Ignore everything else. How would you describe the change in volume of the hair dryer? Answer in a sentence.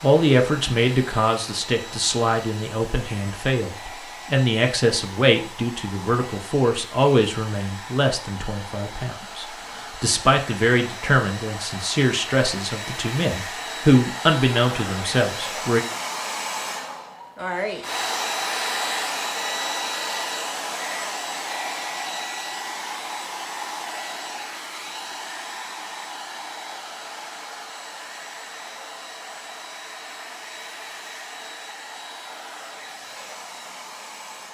The volume of the hair dryer goes up, then down.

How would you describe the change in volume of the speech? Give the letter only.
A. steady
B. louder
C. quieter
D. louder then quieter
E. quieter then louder
A.